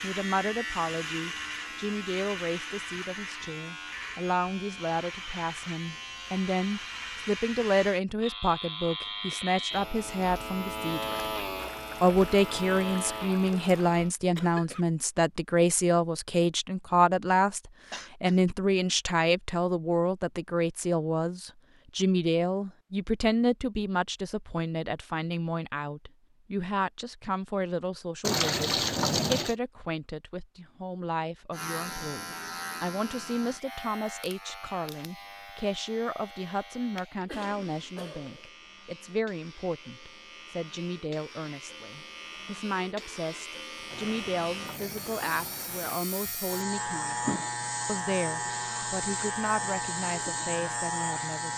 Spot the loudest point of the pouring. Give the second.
29 s.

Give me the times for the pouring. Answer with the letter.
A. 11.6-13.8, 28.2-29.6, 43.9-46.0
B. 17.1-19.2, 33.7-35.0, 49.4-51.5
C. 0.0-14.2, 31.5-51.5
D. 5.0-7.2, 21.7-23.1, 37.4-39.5
A.